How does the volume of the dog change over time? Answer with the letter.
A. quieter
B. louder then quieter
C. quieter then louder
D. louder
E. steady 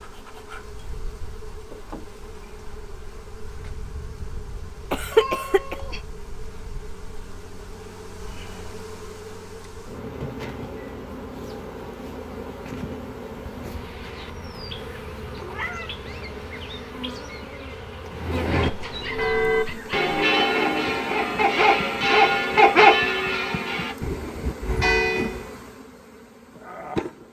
D.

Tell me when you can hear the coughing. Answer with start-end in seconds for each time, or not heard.
4.9-5.8.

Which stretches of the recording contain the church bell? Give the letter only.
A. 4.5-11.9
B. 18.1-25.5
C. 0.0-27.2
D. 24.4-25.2
B.